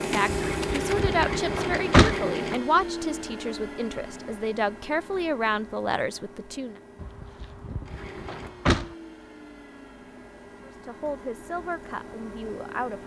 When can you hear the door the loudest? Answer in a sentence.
The loudest moment of the door is at 2 seconds.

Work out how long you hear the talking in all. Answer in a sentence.
You can hear the talking for 9 seconds altogether.